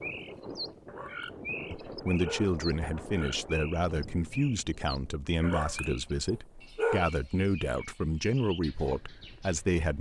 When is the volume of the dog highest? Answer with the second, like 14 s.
7 s.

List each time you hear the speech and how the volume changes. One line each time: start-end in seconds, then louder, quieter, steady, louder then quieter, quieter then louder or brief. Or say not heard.
1.7-9.9 steady.